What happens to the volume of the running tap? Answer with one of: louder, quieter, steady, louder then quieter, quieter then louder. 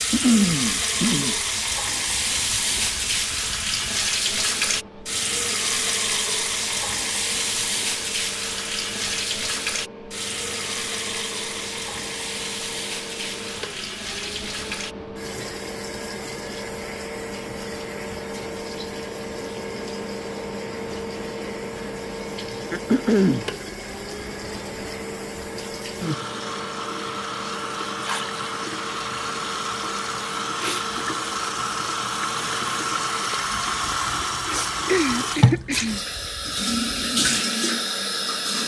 quieter then louder.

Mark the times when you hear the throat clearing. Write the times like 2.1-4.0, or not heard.
0.1-1.4, 22.7-23.5, 34.9-36.0.